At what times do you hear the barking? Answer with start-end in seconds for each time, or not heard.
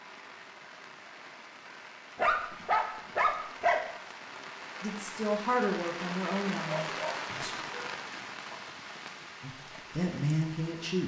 2.1-3.9, 6.5-8.6.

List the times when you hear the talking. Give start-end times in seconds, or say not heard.
4.8-7.5, 9.4-11.0.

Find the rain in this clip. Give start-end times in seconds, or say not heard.
0.0-11.0.